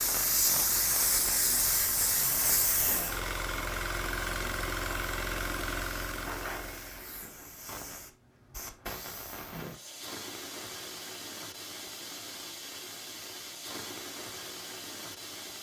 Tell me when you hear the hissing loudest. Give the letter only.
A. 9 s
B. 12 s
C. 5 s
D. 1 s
D.